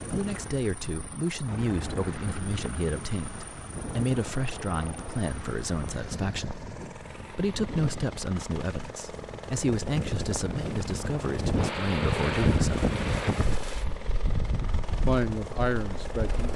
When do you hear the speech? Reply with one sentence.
You can hear the speech from 0.1 to 12.9 s and from 15.1 to 16.5 s.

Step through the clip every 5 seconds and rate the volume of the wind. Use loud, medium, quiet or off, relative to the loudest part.
medium, medium, loud, medium.